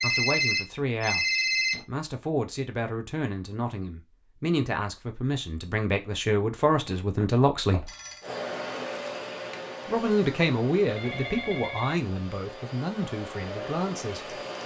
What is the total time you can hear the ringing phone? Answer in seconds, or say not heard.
4 s.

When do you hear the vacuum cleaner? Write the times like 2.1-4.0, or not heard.
8.2-14.6.